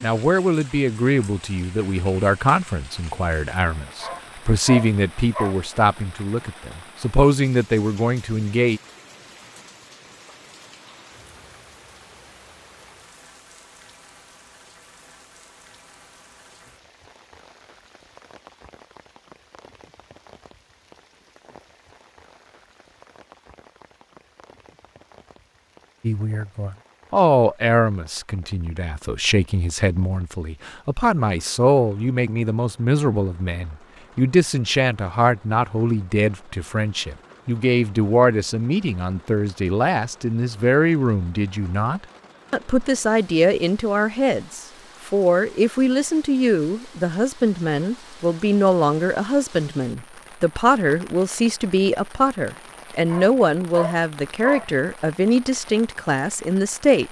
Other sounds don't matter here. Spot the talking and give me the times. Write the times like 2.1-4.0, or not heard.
0.0-8.8, 26.0-57.0.